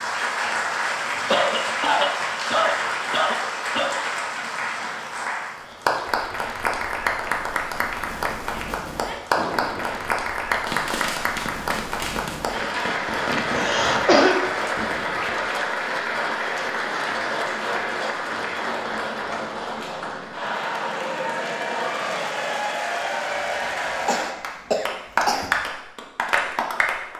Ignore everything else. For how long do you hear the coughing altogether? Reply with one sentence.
You can hear the coughing for 6 seconds altogether.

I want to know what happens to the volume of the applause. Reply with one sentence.
The volume of the applause stays about the same.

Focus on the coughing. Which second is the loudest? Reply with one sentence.
The loudest moment of the coughing is at 14 seconds.